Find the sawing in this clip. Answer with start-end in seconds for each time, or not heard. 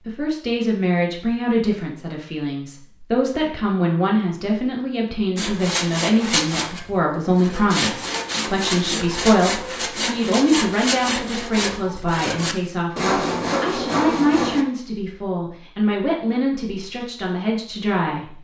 5.3-14.7.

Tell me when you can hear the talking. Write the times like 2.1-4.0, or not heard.
0.0-18.3.